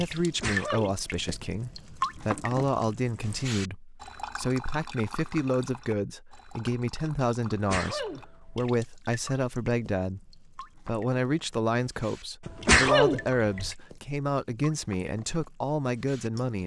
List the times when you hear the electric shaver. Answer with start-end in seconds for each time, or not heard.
not heard.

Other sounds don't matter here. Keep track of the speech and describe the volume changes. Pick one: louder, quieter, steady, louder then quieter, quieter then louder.
steady.